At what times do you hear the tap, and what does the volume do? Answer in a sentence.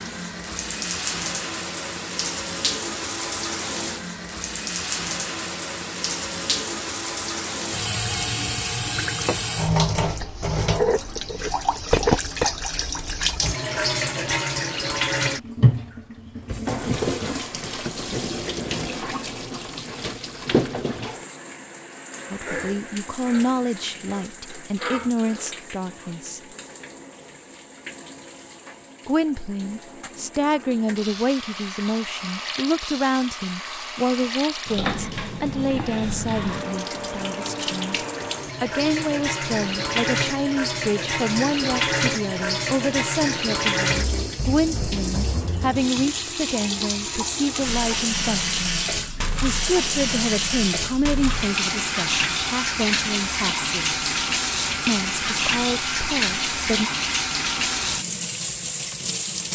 The tap can be heard from 0.0 to 59.5 s, getting quieter then louder.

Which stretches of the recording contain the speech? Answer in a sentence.
You can hear the speech from 22.3 to 26.4 s, from 29.1 to 38.0 s, from 38.6 to 48.8 s, from 49.4 to 54.0 s and from 54.9 to 56.9 s.